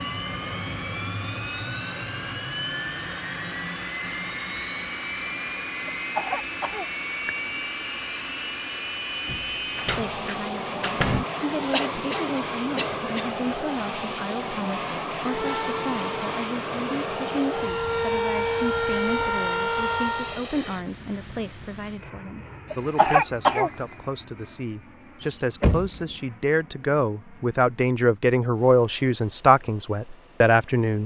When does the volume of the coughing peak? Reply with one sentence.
The loudest moment of the coughing is at 23 seconds.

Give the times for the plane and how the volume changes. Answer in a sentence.
You can hear the plane from 0.0 to 31.0 s, getting quieter.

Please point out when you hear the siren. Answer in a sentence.
The siren can be heard from 15.2 to 20.4 s.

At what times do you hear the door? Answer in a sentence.
The door can be heard from 9.2 to 11.2 s and from 25.2 to 26.1 s.